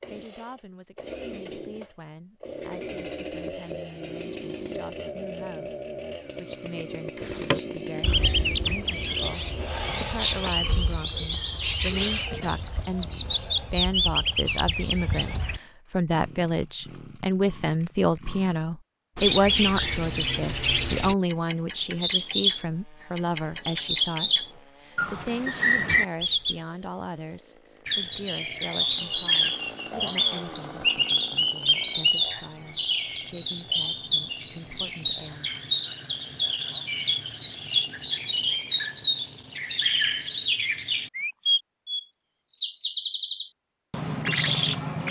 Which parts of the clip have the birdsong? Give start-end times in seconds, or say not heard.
7.2-45.0.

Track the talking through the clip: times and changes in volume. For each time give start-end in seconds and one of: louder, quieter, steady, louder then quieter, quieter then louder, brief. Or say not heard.
0.1-35.5 louder then quieter.